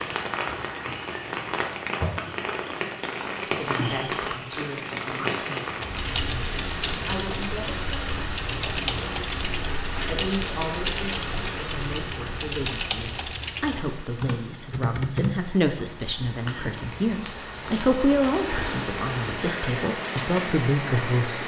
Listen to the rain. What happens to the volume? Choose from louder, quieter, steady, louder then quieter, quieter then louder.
quieter then louder.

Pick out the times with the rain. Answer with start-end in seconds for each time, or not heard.
0.0-21.4.